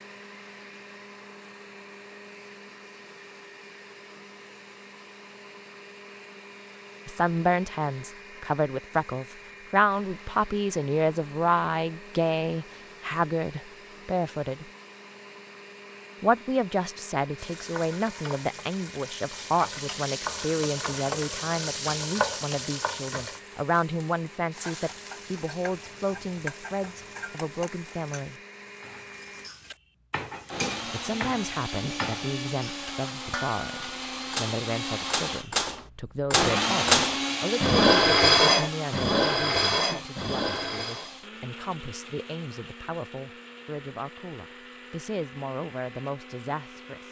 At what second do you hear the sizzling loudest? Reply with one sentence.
The loudest moment of the sizzling is at 22 seconds.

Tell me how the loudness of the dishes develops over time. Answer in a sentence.
The loudness of the dishes goes up, then down.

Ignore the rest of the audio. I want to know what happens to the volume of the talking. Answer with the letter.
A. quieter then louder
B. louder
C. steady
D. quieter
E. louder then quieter
D.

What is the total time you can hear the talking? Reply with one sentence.
You can hear the talking for 36 seconds altogether.